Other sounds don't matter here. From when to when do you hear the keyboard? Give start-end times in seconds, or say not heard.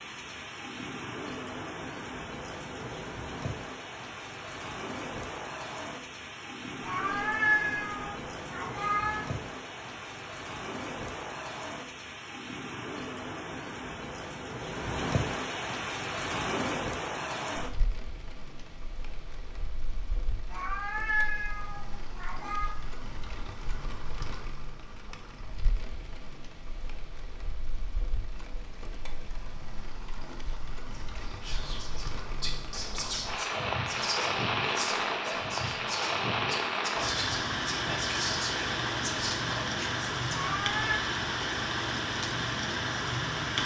not heard.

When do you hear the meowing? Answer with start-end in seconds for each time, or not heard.
6.8-9.3, 20.5-22.8, 40.3-41.0.